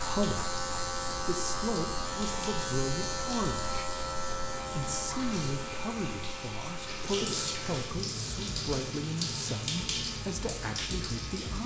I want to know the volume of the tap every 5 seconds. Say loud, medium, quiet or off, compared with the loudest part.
medium, loud, loud.